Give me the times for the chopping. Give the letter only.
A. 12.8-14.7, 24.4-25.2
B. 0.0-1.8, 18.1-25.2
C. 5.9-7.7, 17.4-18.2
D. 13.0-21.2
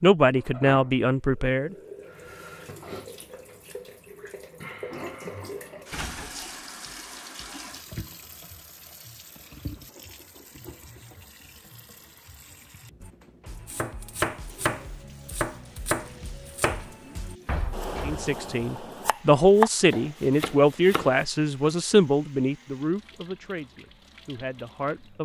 D.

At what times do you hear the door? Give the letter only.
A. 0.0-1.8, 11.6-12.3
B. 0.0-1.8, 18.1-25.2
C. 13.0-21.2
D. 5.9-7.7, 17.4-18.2
D.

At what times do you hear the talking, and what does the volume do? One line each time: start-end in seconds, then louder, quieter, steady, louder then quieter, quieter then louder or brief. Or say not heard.
0.0-1.8 brief
18.1-25.2 quieter.